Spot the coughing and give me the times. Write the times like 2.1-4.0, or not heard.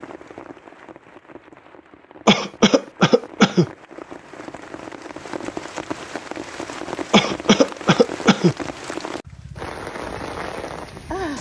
2.2-3.6, 7.1-8.6.